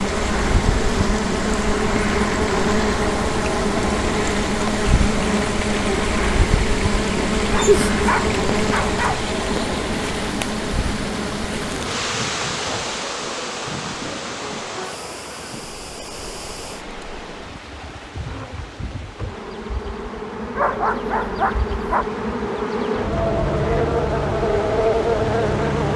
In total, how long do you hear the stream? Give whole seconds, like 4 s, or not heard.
26 s.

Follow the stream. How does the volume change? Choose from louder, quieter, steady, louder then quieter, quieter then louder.
quieter.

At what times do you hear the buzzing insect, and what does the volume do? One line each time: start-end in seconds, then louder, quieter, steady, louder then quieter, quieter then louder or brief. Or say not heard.
0.0-25.9 quieter then louder.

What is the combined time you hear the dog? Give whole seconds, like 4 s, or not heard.
3 s.